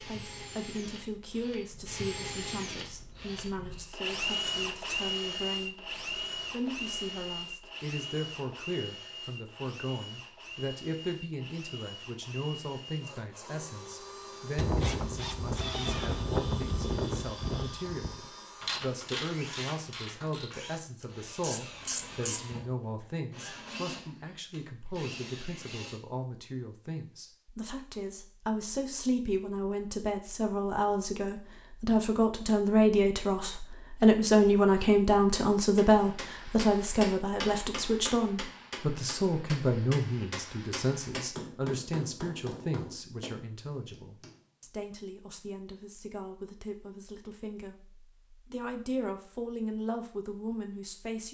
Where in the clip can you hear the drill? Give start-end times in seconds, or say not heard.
0.0-26.0.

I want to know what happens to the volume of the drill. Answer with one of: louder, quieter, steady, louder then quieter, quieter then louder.
quieter.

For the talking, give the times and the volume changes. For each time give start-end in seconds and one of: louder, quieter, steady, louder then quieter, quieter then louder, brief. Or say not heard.
0.0-51.2 louder then quieter.